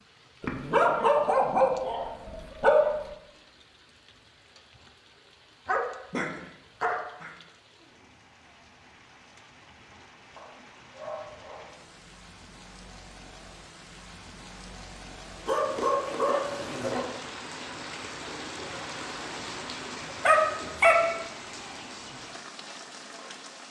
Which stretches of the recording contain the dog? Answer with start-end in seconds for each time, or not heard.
0.4-3.0, 5.7-7.3, 10.3-11.8, 15.4-17.1, 20.2-21.0.